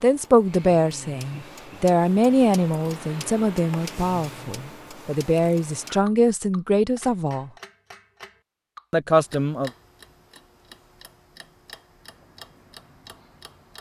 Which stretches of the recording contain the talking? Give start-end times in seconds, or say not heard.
0.0-7.5, 8.9-9.7.